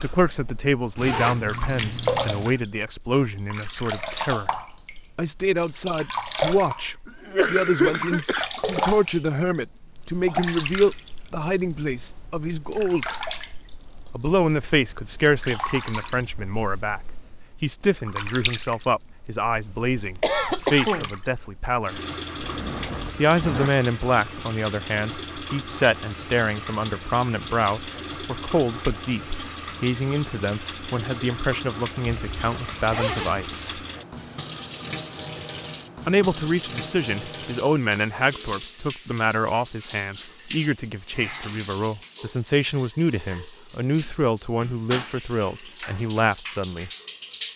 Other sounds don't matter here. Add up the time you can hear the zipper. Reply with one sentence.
You can hear the zipper for 5 seconds altogether.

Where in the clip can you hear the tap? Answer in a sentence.
You can hear the tap from 0.0 to 47.5 s.